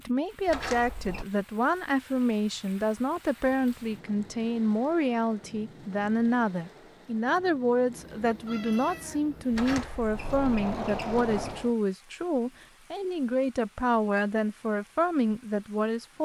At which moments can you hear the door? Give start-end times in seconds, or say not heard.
0.5-1.2, 9.5-11.8.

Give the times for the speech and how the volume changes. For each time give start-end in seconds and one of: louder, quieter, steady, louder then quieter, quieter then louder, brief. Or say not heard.
0.1-16.2 steady.